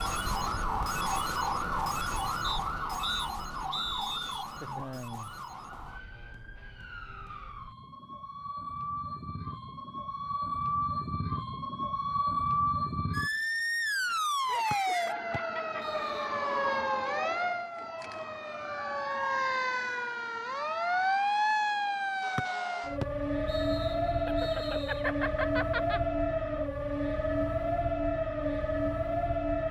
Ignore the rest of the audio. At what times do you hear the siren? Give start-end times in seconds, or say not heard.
0.0-29.6.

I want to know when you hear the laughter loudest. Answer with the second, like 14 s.
25 s.